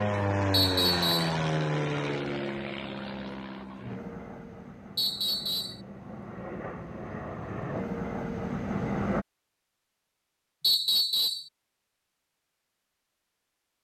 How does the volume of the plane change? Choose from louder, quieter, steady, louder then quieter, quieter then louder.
quieter then louder.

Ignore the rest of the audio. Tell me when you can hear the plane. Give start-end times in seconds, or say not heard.
0.0-9.2.